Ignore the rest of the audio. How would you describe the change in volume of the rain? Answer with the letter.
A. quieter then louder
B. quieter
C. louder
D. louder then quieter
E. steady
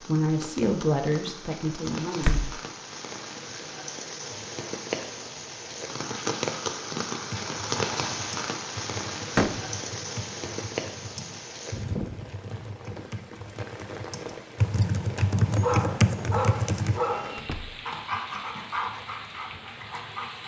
D.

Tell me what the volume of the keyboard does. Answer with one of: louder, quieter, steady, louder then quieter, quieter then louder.
louder.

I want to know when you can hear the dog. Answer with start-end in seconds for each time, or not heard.
15.4-20.4.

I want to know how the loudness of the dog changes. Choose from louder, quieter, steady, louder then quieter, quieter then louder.
quieter.